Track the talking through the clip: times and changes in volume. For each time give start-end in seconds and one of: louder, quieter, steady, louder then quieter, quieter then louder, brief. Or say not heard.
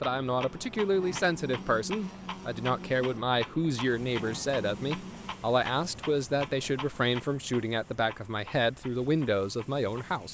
0.0-10.2 steady.